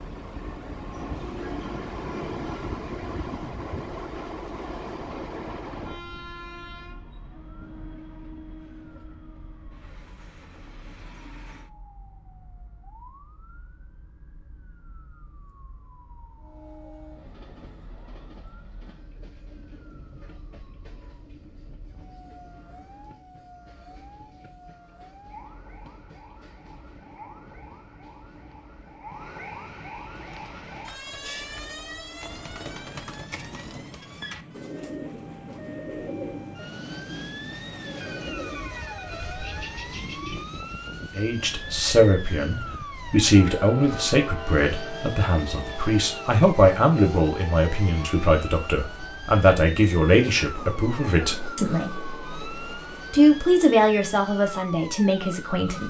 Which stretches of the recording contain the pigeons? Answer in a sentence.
You can hear the pigeons from 30.1 to 40.5 s.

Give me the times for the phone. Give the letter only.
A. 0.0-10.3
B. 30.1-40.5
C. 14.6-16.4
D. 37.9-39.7
D.